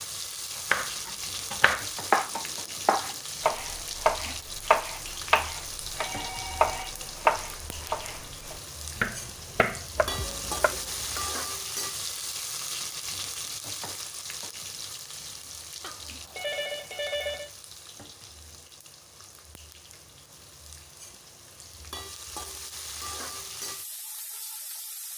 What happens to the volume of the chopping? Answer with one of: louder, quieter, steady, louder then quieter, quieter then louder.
quieter.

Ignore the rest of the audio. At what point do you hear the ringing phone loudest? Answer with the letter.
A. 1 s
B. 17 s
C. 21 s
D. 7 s
B.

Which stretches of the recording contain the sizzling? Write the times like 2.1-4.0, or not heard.
0.0-25.1.